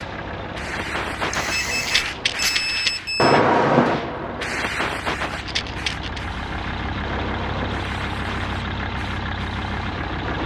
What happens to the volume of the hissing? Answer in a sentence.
The loudness of the hissing goes up, then down.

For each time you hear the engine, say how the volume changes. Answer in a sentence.
The engine can be heard from 0.0 to 10.4 s, getting quieter then louder.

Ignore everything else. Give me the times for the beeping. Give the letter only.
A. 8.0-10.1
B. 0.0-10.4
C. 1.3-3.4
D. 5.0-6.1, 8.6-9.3
C.